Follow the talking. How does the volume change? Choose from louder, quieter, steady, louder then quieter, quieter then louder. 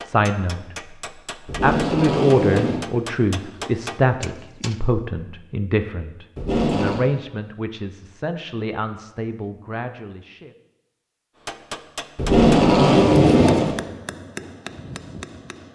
quieter.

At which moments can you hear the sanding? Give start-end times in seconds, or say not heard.
not heard.